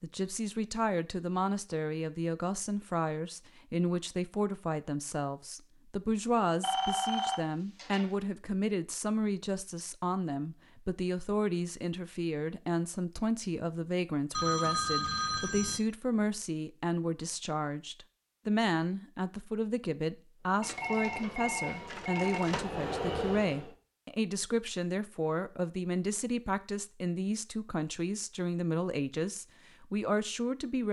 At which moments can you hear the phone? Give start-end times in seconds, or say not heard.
6.6-8.1, 14.3-15.8, 20.6-22.6.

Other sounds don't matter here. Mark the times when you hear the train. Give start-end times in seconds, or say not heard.
20.4-23.7.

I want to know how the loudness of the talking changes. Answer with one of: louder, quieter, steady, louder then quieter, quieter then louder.
steady.